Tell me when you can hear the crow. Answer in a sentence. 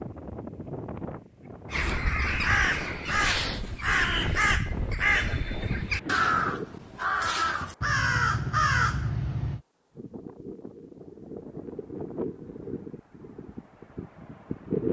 The crow can be heard from 1.7 to 9.6 s.